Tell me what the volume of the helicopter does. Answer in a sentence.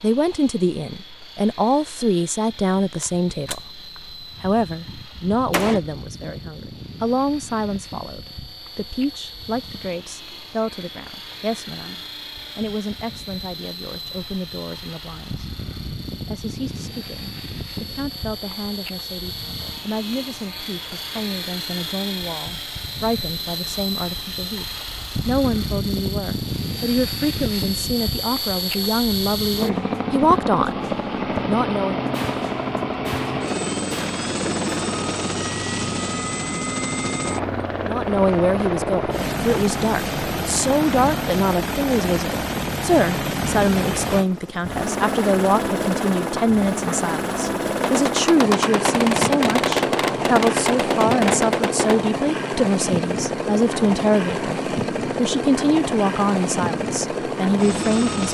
The volume of the helicopter goes up.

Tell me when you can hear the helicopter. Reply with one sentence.
The helicopter can be heard from 0.0 to 58.3 s.